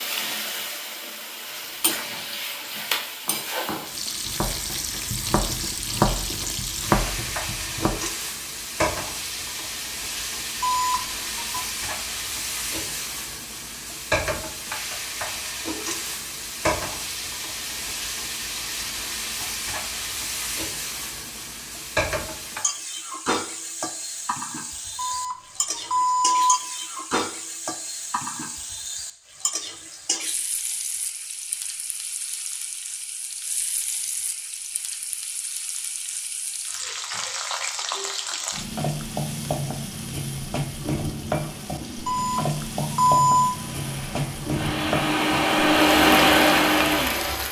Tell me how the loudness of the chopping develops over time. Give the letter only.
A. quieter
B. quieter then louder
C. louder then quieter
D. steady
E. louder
E.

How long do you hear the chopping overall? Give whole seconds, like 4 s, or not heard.
6 s.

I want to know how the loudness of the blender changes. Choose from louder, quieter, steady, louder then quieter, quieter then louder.
louder.